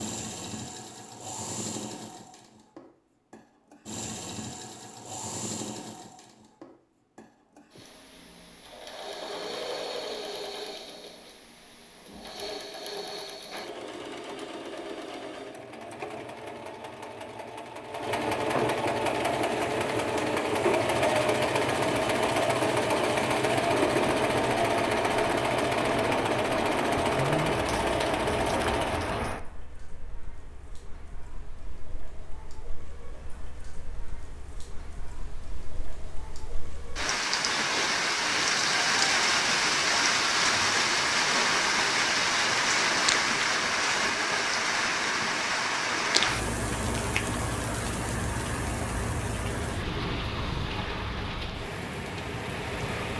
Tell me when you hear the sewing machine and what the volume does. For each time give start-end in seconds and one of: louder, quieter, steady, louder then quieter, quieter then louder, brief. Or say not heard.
0.0-29.2 louder.